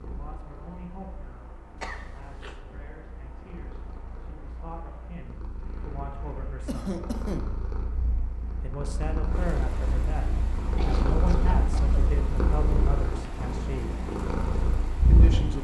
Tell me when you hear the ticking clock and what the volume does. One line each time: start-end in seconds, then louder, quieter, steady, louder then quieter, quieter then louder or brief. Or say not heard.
not heard.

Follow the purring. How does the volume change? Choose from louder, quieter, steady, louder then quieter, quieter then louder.
louder.